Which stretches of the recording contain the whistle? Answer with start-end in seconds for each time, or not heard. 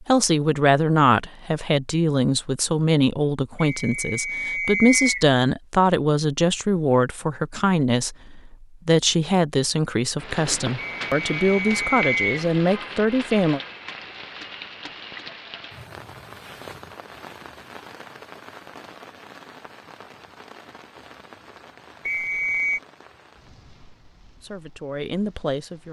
3.5-5.2, 10.8-12.4, 22.1-22.8.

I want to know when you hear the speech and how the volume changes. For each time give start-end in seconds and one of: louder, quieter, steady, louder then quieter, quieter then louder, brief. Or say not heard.
0.0-13.6 steady
24.4-25.8 brief.